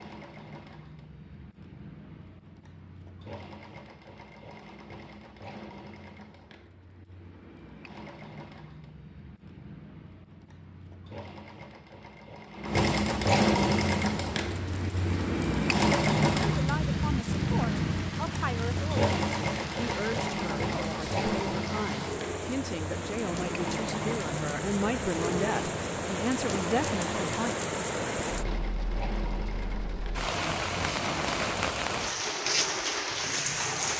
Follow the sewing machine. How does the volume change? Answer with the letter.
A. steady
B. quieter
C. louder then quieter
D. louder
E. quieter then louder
C.